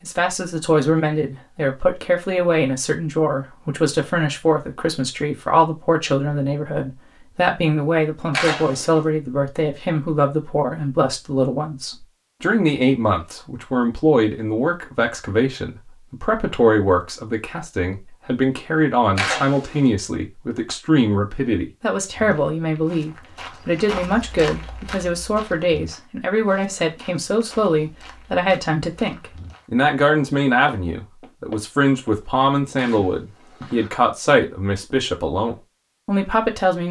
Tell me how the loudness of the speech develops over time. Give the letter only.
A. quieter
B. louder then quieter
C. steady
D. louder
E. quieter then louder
C.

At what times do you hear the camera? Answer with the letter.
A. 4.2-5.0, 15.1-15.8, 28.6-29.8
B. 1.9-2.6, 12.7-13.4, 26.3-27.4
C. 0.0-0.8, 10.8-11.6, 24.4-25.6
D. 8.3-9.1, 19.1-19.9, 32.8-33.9
D.